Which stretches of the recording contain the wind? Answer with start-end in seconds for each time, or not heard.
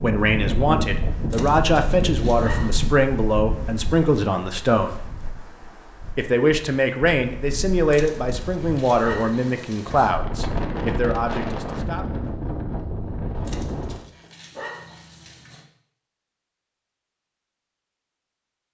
0.0-14.1.